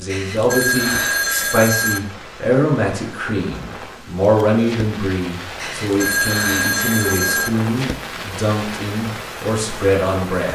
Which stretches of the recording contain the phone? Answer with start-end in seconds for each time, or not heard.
0.1-2.0, 5.5-7.5.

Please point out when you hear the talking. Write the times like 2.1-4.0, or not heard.
0.0-10.5.